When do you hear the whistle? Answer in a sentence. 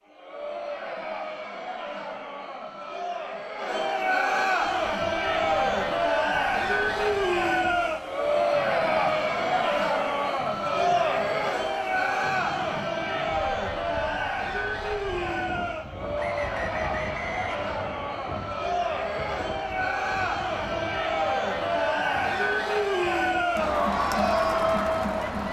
The whistle can be heard from 16.1 to 17.6 s.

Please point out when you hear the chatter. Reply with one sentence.
The chatter can be heard from 0.1 to 25.4 s.